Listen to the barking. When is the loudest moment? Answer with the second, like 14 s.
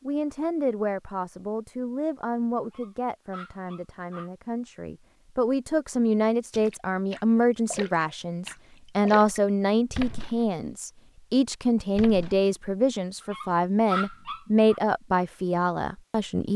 14 s.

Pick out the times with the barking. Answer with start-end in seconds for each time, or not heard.
2.6-4.3, 13.2-14.8.